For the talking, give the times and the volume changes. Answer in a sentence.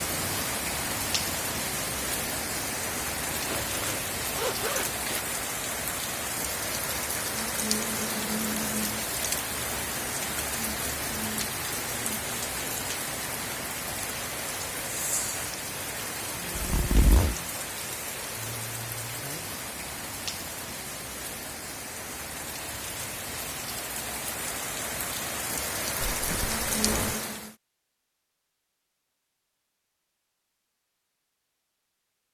You can't hear the talking here.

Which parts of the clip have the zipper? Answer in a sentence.
The zipper can be heard from 3.3 to 5.2 s, from 16.6 to 17.4 s and from 26.1 to 27.1 s.